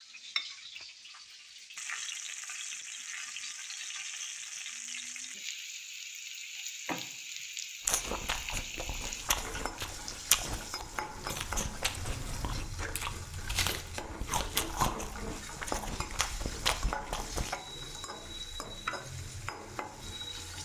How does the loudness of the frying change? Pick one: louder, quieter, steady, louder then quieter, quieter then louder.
steady.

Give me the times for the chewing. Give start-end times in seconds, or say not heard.
7.8-17.6.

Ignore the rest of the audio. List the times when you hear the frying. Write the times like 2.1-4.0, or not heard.
0.0-20.5.